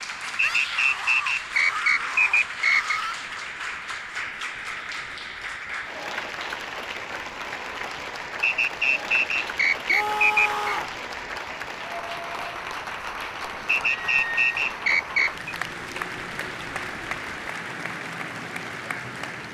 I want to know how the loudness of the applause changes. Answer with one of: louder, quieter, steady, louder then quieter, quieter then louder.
steady.